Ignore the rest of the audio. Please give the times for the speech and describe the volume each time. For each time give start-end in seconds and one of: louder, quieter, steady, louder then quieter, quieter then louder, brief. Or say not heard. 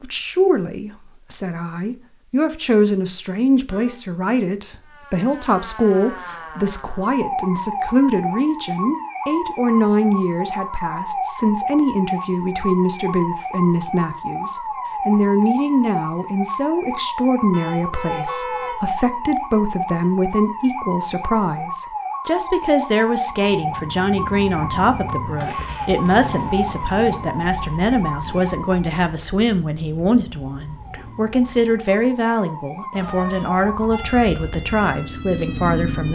0.0-36.1 steady.